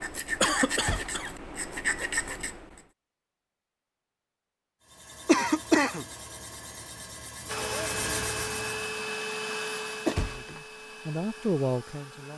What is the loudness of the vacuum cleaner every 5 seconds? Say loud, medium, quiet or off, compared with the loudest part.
off, loud, medium.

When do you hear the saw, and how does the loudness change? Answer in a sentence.
You can hear the saw briefly from 0.0 to 2.9 s; and from 4.8 to 9.1 s, getting louder.